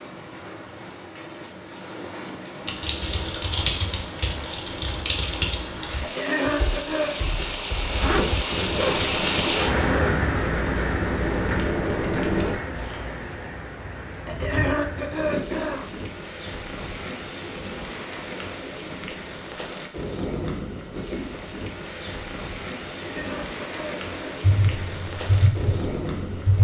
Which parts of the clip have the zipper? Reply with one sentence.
The zipper can be heard from 8.0 to 10.2 s.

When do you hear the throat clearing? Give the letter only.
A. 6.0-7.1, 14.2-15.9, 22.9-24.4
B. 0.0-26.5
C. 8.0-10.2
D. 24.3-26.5
A.